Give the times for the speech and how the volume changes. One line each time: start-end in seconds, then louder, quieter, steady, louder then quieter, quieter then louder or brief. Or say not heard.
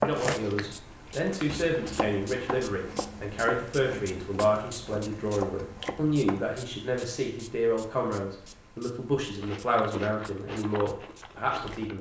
0.0-11.9 steady.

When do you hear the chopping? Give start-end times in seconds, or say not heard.
0.0-6.6.